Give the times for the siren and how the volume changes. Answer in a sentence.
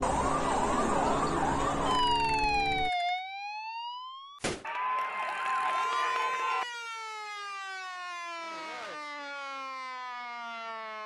You can hear the siren from 0.0 to 11.0 s, getting quieter.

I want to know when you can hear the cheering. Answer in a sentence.
You can hear the cheering from 4.6 to 6.7 s.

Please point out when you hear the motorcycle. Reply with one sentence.
The motorcycle can be heard from 0.0 to 2.9 s.